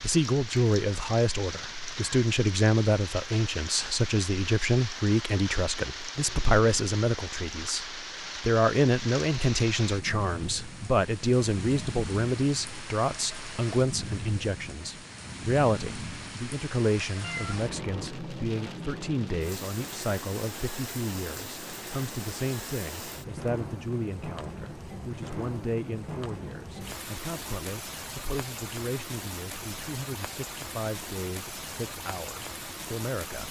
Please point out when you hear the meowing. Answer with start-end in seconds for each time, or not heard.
17.2-18.1.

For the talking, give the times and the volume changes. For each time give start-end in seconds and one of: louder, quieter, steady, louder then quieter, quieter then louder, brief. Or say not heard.
0.0-33.4 quieter.